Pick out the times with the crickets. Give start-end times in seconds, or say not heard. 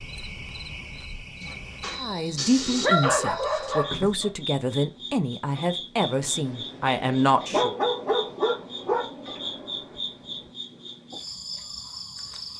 0.0-12.5.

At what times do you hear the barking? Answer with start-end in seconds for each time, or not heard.
1.4-4.3, 7.5-9.1.